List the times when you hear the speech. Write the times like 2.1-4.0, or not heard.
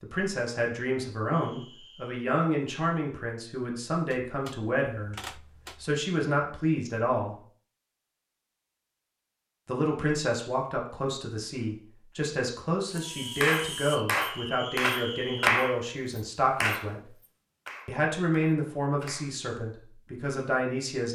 0.0-7.3, 9.7-17.1, 17.9-21.1.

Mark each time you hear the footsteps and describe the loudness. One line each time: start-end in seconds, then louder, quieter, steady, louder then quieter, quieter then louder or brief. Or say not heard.
not heard.